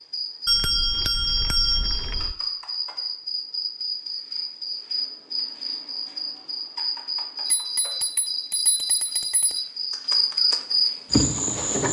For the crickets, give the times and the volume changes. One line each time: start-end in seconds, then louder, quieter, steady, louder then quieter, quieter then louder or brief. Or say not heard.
0.0-11.8 louder.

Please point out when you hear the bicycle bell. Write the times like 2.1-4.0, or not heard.
0.5-2.4, 7.5-9.7.